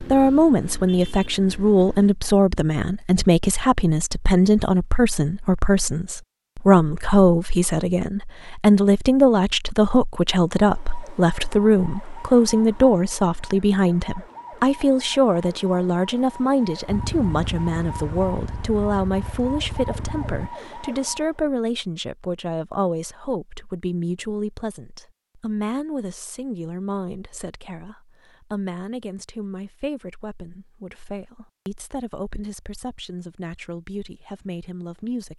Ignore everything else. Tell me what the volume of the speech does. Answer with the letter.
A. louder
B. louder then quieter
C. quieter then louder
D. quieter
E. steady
D.